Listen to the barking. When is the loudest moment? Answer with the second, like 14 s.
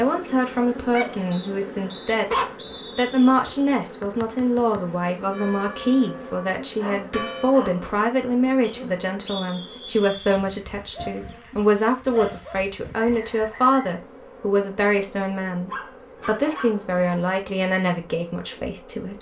2 s.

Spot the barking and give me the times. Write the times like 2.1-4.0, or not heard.
0.9-2.5, 6.8-7.8, 10.9-12.6, 15.7-16.9.